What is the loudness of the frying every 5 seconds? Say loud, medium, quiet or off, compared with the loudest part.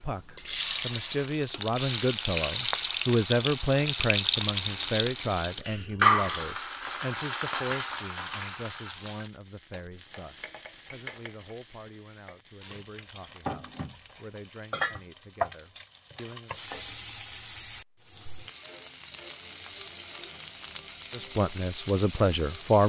loud, loud, medium, medium, medium.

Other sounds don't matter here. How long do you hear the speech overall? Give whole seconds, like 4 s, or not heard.
18 s.